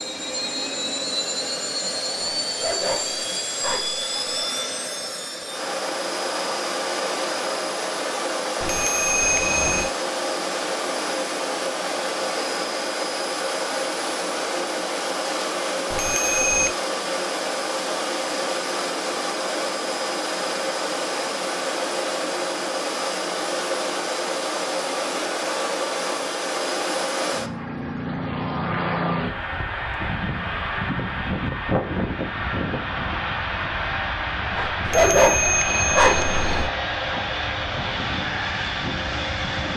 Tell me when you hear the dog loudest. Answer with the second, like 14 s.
35 s.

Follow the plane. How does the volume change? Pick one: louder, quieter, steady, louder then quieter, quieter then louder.
steady.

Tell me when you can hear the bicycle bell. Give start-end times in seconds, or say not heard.
8.6-9.9, 15.9-16.8, 34.8-36.7.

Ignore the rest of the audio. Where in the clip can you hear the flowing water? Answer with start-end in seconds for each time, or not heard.
not heard.